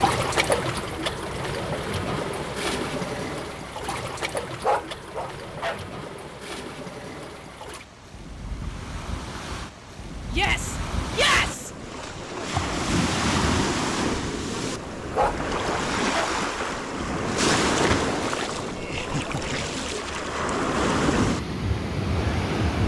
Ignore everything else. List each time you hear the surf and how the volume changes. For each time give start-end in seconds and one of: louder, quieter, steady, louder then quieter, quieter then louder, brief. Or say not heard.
0.0-22.8 quieter then louder.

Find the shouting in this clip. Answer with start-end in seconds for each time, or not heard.
10.3-11.7.